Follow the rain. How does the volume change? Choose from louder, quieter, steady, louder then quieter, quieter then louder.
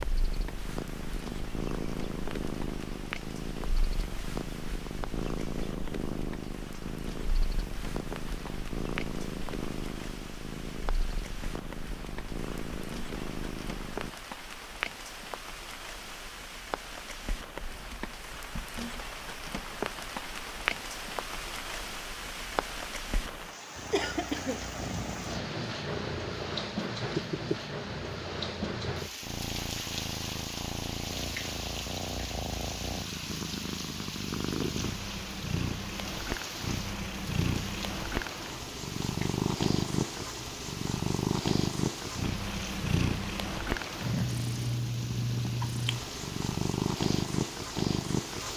louder then quieter.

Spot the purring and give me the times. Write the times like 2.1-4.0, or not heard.
0.0-14.1, 23.8-48.5.